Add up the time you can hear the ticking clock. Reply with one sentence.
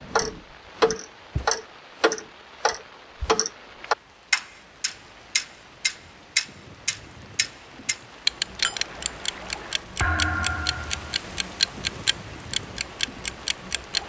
The ticking clock can be heard for 14 seconds in total.